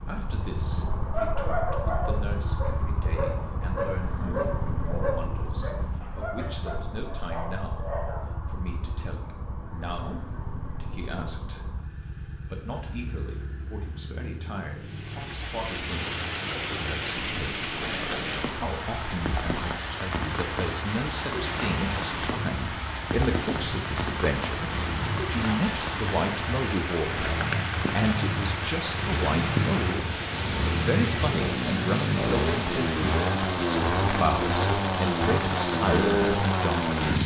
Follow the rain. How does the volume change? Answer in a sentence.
The volume of the rain stays about the same.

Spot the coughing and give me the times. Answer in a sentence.
You can't hear the coughing here.